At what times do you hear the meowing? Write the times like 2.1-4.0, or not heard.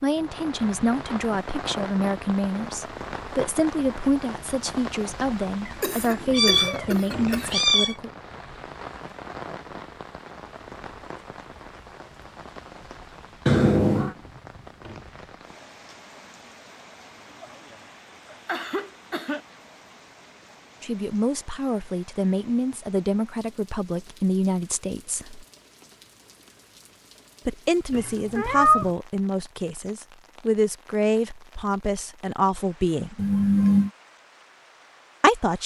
5.7-8.0, 13.4-14.2, 27.9-28.9.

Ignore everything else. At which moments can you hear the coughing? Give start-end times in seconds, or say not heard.
5.8-7.5, 18.3-19.4, 33.1-33.9.